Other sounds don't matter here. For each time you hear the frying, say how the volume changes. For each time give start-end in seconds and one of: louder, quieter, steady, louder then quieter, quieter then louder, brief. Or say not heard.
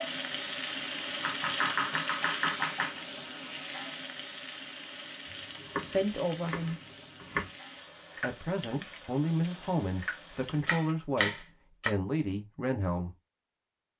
0.0-10.8 quieter.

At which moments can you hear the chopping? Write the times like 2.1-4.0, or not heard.
1.2-3.0, 5.6-7.5, 10.7-11.9.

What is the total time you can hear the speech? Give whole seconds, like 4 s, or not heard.
6 s.